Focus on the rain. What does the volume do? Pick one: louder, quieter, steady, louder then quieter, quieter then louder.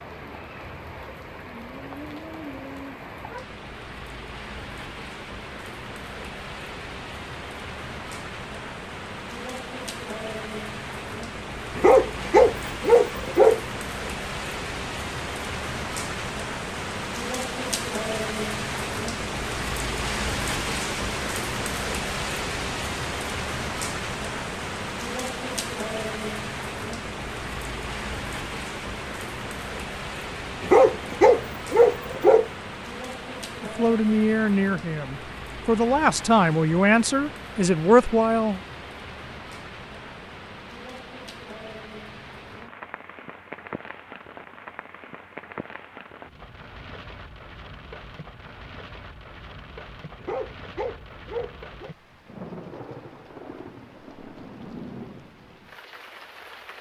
louder then quieter.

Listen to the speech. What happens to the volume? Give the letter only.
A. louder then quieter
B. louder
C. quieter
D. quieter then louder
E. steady
D.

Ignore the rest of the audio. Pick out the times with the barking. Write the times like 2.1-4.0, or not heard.
11.8-13.6, 30.6-32.5, 50.2-52.0.